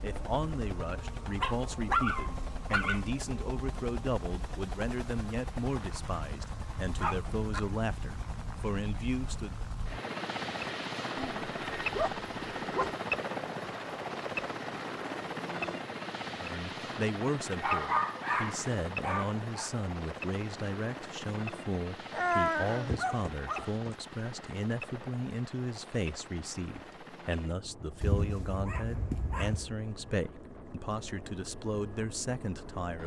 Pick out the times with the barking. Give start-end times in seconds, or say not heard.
1.4-3.0, 7.0-7.6, 11.2-12.9, 17.6-19.7, 22.1-23.9, 28.0-29.8.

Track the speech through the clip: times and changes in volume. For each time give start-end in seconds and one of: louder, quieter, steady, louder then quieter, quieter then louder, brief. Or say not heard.
0.0-9.7 steady
16.4-33.0 steady.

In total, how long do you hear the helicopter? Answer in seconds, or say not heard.
33 s.